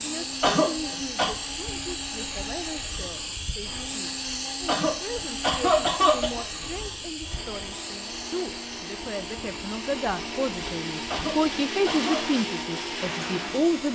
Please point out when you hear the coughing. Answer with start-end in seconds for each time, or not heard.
0.4-1.3, 4.7-6.5, 11.1-12.2.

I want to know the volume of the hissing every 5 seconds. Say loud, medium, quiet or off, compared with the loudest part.
loud, loud, medium.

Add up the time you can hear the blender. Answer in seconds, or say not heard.
14 s.